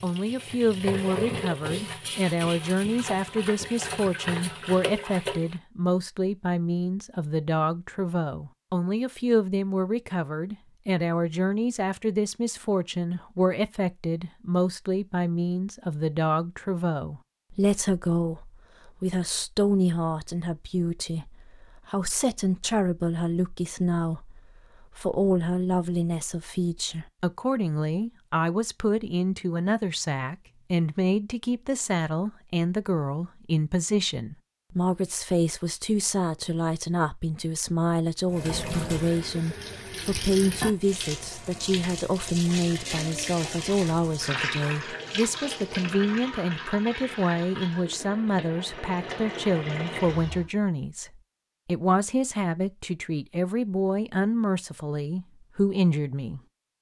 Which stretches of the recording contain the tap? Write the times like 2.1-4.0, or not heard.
0.0-5.6, 38.2-50.5.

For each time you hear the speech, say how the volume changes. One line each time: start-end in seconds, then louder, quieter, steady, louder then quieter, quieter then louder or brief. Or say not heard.
0.0-56.4 steady.